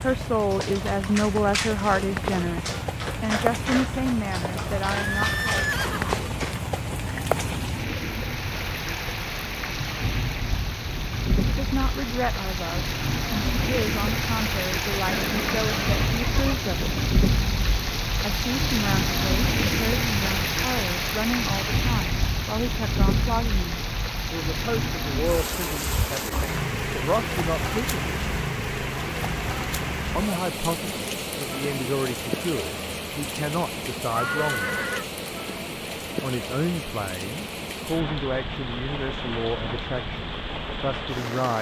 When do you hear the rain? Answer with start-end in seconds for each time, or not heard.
0.0-41.5.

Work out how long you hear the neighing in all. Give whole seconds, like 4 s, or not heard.
4 s.